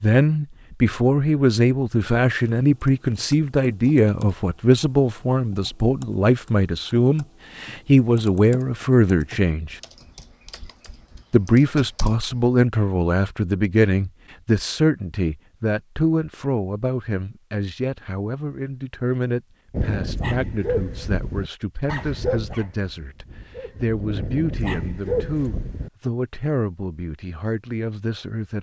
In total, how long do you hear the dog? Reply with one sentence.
You can hear the dog for 6 seconds altogether.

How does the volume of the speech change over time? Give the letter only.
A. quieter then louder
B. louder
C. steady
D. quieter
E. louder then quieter
D.